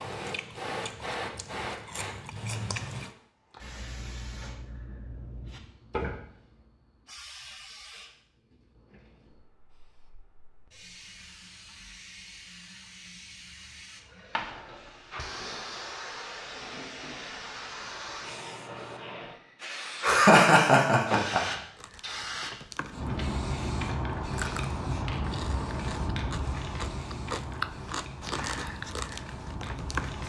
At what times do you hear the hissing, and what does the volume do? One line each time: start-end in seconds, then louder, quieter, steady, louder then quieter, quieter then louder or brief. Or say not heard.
0.0-30.2 quieter then louder.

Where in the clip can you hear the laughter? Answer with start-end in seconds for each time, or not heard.
20.0-21.4.